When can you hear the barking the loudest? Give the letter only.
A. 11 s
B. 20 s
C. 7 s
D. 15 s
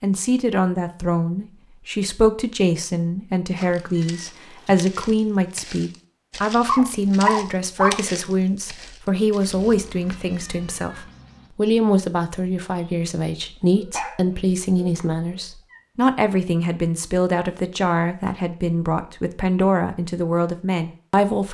C.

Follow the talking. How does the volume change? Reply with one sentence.
The volume of the talking stays about the same.